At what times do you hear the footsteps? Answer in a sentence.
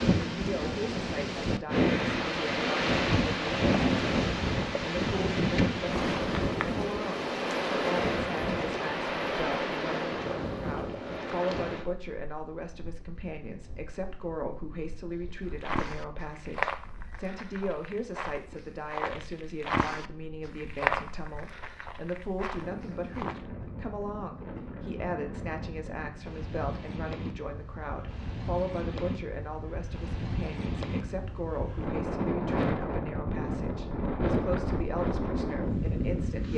The footsteps can be heard from 15.6 to 23.4 s.